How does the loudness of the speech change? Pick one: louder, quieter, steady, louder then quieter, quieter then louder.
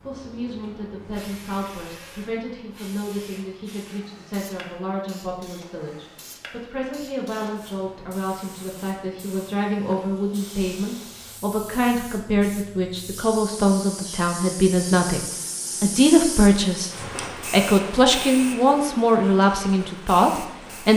louder.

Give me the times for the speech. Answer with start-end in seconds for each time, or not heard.
0.0-20.9.